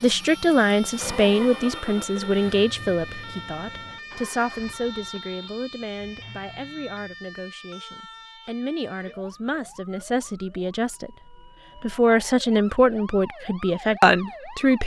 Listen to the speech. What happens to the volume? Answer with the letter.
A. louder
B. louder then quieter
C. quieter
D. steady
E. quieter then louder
E.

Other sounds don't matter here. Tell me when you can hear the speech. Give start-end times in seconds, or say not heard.
0.0-14.8.